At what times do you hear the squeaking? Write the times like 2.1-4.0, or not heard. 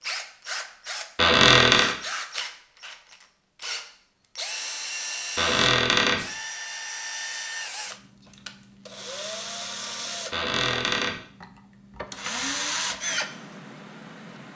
1.1-1.9, 5.3-6.2, 10.3-11.2.